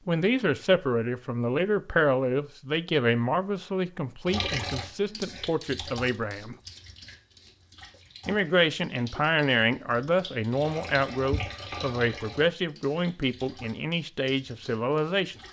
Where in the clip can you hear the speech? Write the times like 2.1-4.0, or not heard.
0.1-6.5, 8.2-15.3.